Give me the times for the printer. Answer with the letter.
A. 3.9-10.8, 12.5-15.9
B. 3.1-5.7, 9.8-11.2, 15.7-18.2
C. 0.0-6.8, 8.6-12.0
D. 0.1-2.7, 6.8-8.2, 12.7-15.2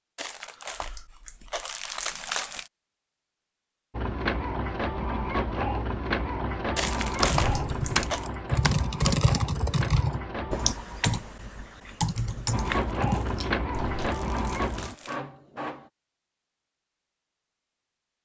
A.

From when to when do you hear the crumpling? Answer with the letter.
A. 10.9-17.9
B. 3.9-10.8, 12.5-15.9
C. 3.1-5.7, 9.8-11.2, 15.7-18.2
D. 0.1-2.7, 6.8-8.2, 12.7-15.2
D.